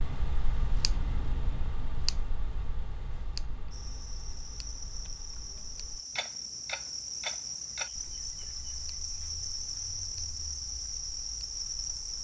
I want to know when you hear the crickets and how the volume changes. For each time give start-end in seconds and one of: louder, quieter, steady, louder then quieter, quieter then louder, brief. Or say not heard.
3.7-12.1 louder.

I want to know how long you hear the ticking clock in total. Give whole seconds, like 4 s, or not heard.
12 s.